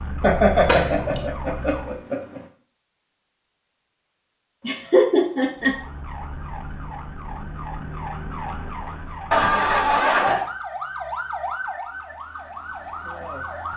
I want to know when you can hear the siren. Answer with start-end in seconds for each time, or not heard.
0.0-2.0, 5.5-13.7.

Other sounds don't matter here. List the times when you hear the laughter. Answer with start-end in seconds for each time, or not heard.
0.2-2.4, 4.7-5.8, 9.3-10.4.